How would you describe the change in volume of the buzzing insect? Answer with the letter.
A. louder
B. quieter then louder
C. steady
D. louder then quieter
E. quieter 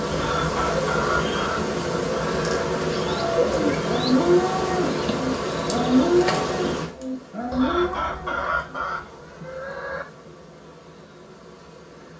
E.